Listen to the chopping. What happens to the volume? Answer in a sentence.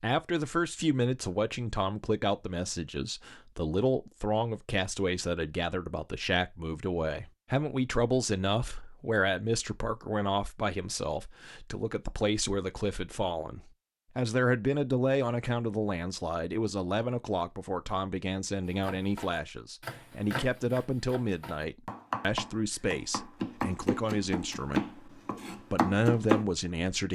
The loudness of the chopping goes down, then up.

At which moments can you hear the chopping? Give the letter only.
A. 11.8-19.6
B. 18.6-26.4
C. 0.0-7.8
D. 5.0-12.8
B.